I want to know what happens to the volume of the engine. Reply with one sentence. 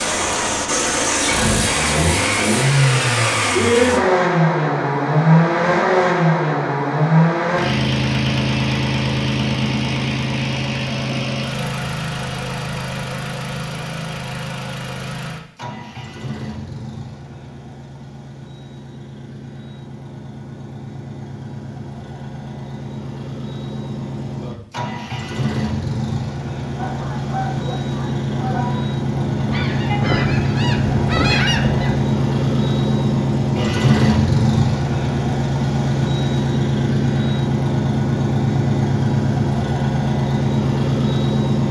The loudness of the engine goes down, then up.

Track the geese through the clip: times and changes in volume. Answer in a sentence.
The geese can be heard from 26.8 to 31.9 s, getting louder.